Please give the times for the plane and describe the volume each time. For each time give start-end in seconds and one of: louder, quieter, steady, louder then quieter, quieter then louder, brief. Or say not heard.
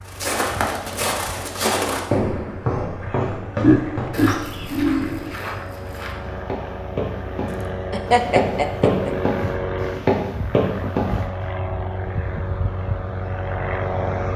0.0-14.3 louder.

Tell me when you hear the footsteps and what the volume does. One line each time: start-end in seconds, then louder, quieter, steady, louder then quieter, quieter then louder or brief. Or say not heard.
0.1-11.2 quieter then louder.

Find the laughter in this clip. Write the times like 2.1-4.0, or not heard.
3.6-5.3, 7.9-9.1.